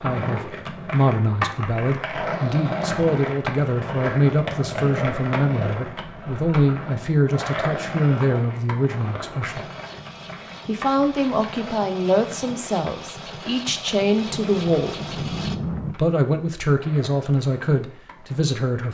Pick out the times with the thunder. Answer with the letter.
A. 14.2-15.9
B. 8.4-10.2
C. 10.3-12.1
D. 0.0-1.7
A.